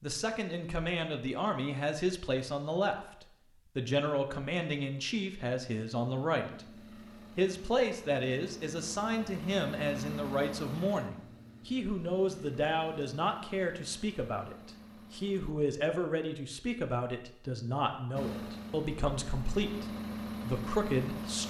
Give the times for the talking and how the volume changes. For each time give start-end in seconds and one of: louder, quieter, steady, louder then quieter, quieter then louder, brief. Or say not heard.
0.0-21.4 steady.